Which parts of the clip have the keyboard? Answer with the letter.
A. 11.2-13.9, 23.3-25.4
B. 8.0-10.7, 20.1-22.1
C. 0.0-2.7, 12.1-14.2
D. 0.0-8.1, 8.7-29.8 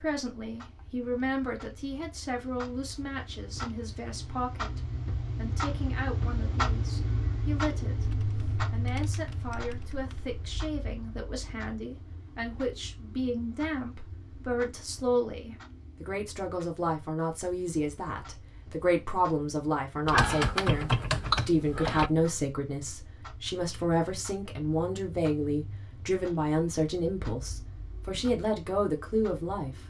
B.